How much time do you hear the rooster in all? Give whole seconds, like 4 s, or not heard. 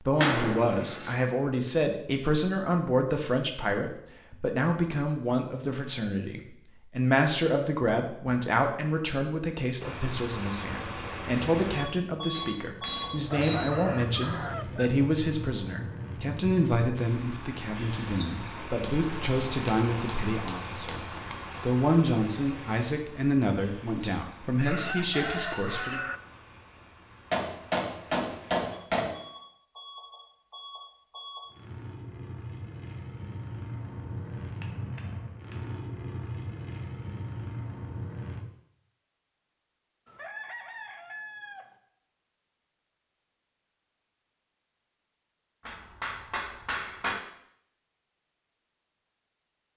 5 s.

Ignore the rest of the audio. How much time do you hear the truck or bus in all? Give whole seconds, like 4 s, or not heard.
29 s.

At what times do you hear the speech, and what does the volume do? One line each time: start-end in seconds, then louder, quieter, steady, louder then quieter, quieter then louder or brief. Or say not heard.
0.0-26.0 steady.